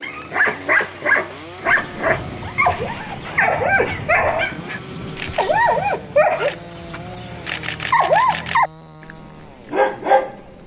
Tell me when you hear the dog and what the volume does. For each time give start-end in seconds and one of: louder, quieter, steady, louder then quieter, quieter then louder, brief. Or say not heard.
0.0-10.5 steady.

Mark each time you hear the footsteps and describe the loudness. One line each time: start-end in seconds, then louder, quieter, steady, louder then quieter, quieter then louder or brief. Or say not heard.
not heard.